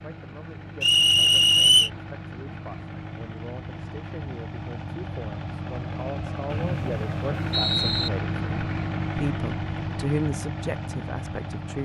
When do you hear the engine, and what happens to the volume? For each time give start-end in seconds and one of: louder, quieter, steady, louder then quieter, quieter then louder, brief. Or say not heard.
0.0-11.7 louder.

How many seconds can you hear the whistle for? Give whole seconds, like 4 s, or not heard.
3 s.